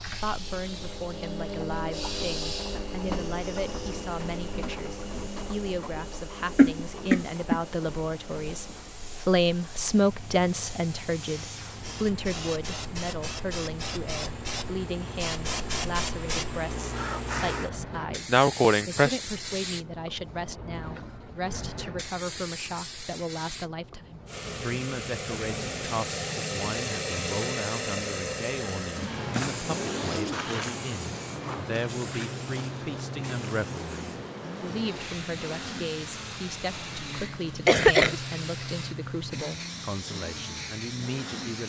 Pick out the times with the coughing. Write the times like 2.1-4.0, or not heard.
6.5-7.6, 18.3-19.2, 37.2-38.1.